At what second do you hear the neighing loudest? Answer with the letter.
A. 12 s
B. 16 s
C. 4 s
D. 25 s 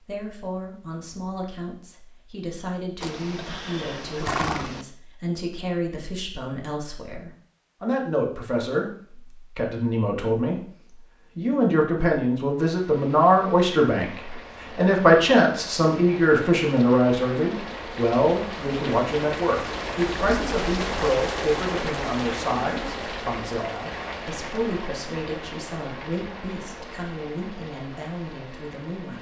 C.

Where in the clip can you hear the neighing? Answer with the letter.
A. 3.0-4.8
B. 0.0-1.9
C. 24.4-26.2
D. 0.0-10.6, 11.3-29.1
A.